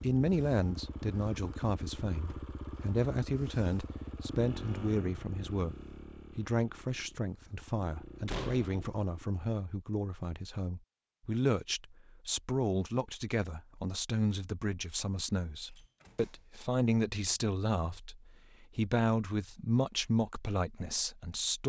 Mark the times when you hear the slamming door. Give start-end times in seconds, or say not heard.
2.1-2.5, 8.2-8.8, 15.7-16.5.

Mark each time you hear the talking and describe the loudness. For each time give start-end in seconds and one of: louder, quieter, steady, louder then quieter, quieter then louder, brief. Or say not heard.
0.0-21.6 steady.